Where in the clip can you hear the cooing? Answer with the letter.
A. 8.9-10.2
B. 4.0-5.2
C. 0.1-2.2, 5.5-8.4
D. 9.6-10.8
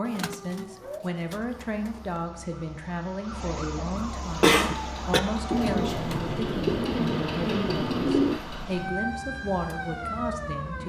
C.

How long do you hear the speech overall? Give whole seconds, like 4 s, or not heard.
11 s.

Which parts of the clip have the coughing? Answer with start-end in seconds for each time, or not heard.
4.0-5.2.